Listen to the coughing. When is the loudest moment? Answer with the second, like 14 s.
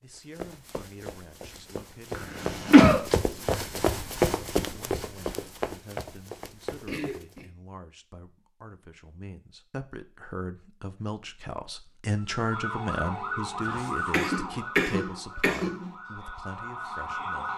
3 s.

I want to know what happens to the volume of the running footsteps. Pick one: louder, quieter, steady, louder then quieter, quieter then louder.
louder then quieter.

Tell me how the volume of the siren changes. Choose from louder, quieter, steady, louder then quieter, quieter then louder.
quieter then louder.